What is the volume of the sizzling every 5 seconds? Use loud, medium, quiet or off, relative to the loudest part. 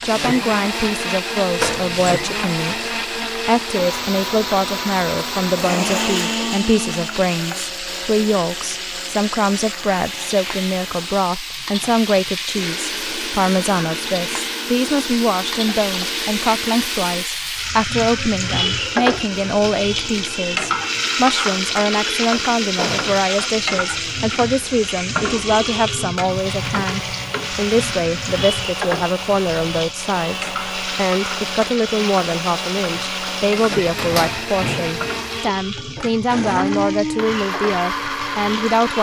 medium, medium, medium, loud, loud, loud, medium, medium.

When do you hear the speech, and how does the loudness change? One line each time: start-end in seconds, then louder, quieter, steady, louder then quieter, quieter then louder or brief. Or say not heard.
0.0-38.9 steady.